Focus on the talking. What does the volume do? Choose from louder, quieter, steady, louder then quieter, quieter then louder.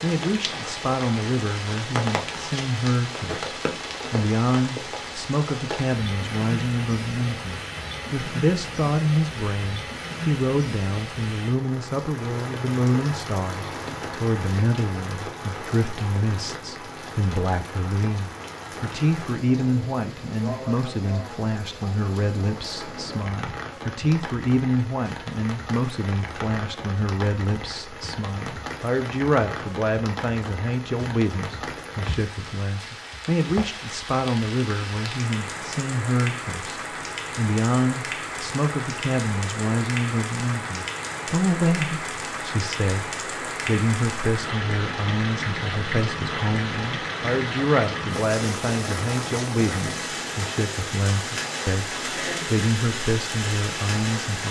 steady.